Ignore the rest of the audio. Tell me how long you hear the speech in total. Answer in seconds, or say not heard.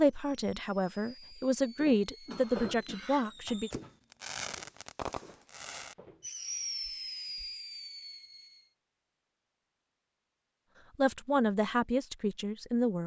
6 s.